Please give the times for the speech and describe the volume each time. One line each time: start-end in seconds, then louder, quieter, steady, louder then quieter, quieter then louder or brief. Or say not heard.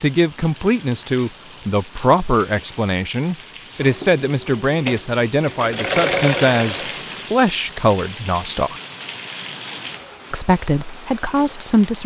0.0-8.8 steady
10.3-12.0 brief.